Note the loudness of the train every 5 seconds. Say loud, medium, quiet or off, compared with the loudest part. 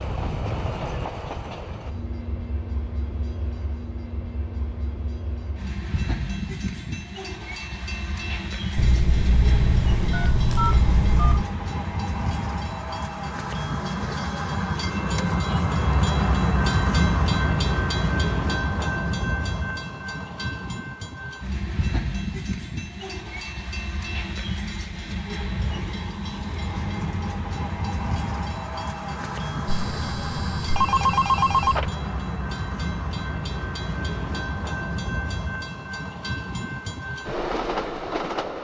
medium, medium, medium, loud, medium, medium, medium, medium.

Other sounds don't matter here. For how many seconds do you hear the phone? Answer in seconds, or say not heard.
5 s.